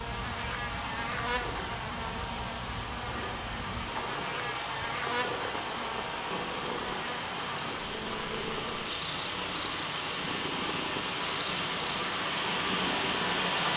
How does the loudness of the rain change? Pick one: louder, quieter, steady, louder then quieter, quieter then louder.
louder.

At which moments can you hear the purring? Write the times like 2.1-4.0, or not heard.
0.0-13.6.